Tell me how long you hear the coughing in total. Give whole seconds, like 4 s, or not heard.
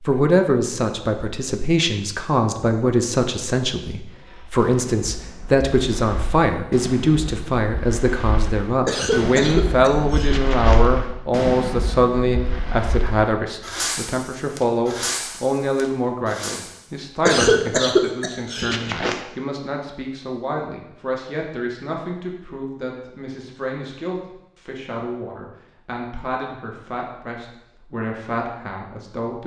4 s.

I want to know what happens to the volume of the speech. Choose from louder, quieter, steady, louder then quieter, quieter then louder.
quieter.